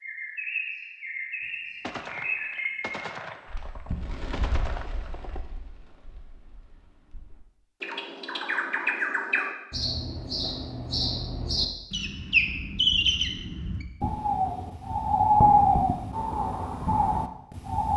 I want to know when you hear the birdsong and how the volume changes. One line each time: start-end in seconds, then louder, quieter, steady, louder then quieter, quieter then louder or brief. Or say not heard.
0.0-17.9 quieter then louder.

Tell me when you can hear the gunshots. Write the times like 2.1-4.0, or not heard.
1.8-5.4.